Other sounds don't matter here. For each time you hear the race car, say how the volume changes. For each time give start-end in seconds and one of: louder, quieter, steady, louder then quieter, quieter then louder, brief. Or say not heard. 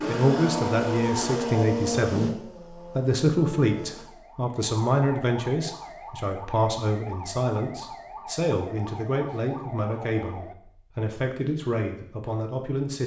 0.0-4.0 quieter.